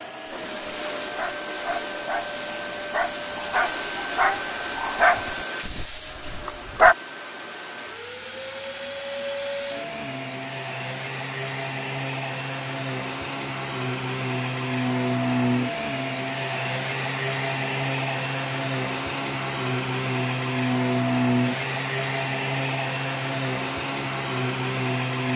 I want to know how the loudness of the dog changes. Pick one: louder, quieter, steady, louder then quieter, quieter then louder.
louder then quieter.